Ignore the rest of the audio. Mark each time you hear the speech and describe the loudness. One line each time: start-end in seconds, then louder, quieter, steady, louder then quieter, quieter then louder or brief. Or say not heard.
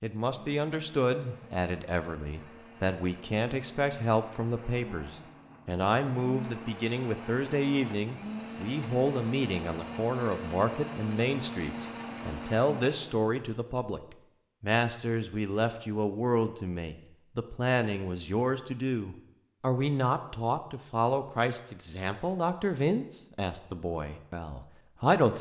0.0-25.3 steady.